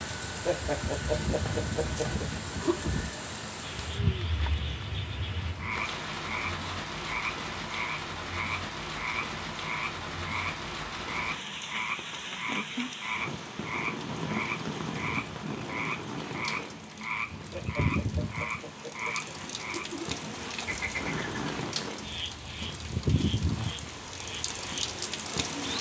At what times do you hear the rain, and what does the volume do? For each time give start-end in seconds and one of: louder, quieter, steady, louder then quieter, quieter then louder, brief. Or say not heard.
0.0-25.7 steady.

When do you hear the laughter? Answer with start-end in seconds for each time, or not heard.
0.5-2.9, 17.5-20.1.